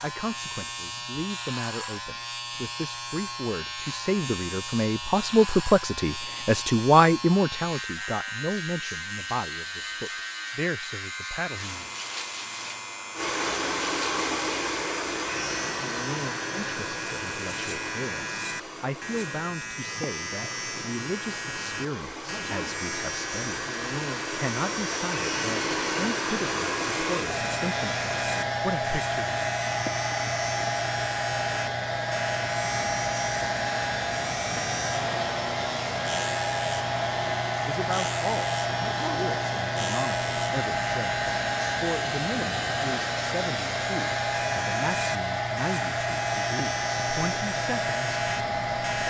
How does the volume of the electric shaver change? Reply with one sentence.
The volume of the electric shaver stays about the same.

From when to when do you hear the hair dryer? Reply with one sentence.
The hair dryer can be heard from 13.2 to 49.0 s.